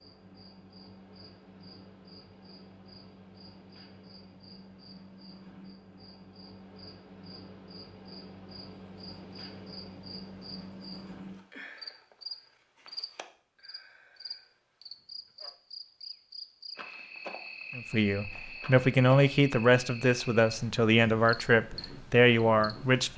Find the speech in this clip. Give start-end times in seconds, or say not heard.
17.8-23.1.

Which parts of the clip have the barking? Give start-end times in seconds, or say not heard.
not heard.